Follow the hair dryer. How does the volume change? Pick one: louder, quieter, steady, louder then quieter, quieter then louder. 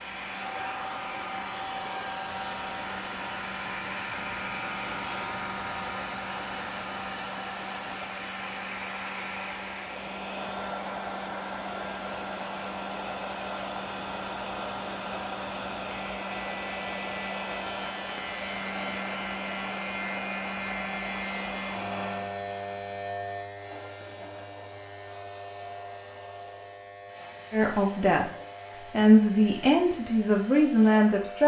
quieter.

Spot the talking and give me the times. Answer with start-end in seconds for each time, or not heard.
27.5-28.3, 28.9-31.4.